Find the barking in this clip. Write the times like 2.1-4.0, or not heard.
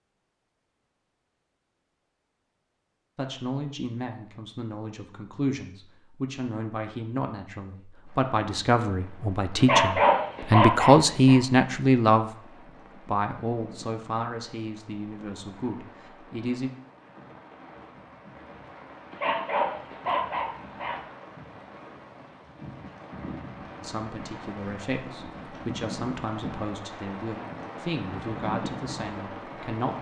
9.6-11.4, 19.1-21.0.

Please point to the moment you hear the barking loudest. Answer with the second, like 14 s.
10 s.